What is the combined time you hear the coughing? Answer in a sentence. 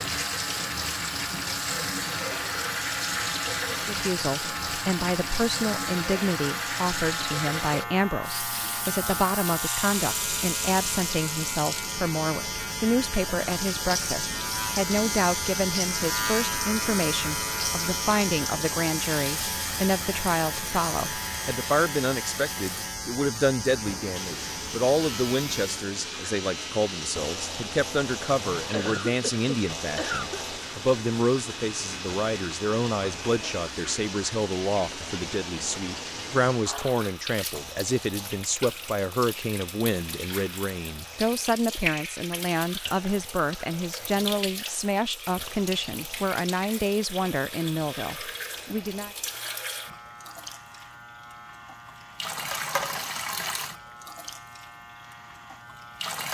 You can hear the coughing for 2 seconds altogether.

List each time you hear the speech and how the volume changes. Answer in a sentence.
The speech can be heard from 3.7 to 49.1 s, at a steady volume.